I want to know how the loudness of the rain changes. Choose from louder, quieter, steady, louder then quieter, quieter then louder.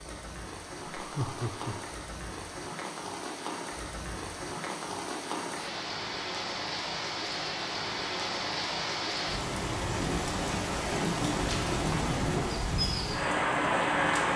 louder.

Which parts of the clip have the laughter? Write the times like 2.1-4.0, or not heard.
0.9-1.8.